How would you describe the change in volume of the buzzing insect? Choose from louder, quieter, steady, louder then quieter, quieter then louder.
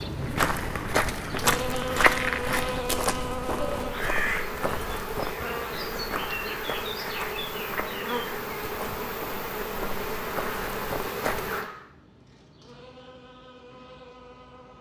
quieter.